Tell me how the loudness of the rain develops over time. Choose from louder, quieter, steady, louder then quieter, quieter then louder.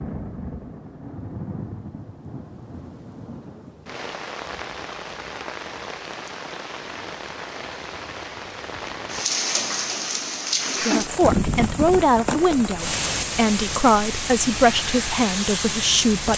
louder.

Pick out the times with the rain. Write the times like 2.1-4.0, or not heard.
0.0-16.3.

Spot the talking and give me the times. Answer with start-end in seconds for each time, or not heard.
10.8-16.3.